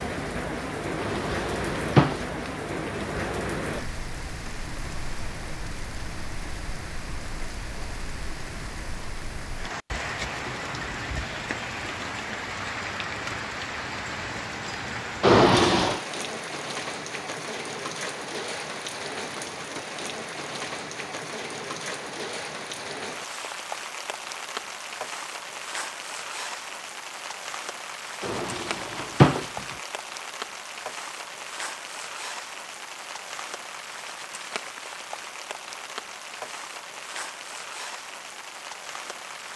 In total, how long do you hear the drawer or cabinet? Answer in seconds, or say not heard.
4 s.